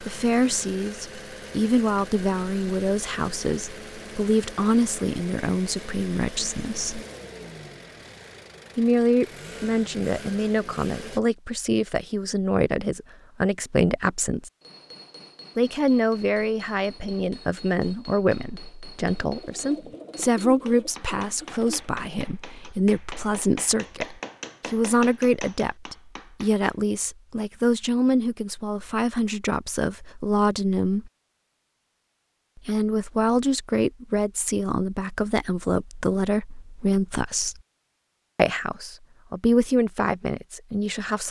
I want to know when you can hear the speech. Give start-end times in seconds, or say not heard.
0.0-7.0, 8.8-14.5, 15.6-31.1, 32.5-37.5, 38.4-41.2.